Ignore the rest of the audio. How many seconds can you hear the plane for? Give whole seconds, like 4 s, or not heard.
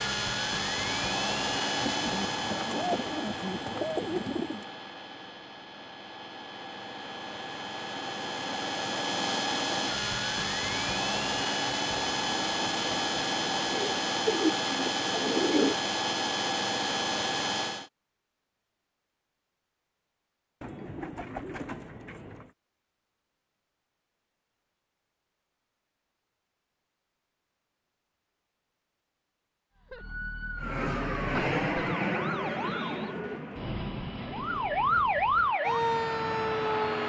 24 s.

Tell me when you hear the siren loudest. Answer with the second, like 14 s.
35 s.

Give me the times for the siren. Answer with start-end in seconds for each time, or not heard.
29.8-33.0, 34.2-37.0.